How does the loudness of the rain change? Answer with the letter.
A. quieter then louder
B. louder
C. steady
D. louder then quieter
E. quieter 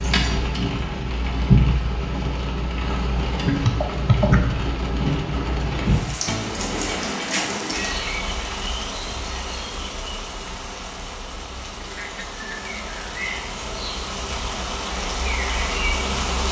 A.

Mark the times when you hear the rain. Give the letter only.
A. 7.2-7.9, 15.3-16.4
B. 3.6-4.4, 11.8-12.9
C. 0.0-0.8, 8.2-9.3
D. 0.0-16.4
D.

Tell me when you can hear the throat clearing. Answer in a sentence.
The throat clearing can be heard from 3.6 to 4.4 s and from 11.8 to 12.9 s.